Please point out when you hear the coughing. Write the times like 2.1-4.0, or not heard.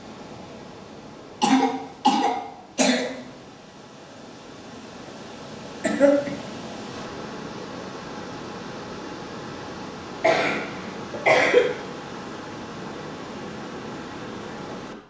1.4-3.1, 5.8-6.3, 10.2-11.7.